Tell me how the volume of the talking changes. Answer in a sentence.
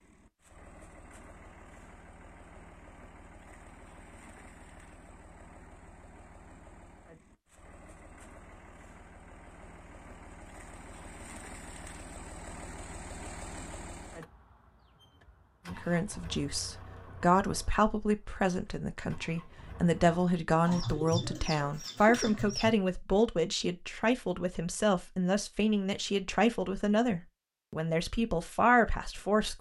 The loudness of the talking stays about the same.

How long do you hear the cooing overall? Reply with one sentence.
You can hear the cooing for 2 seconds altogether.